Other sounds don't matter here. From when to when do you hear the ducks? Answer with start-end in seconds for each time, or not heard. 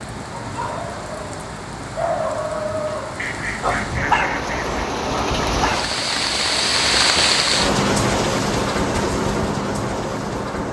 3.1-4.9.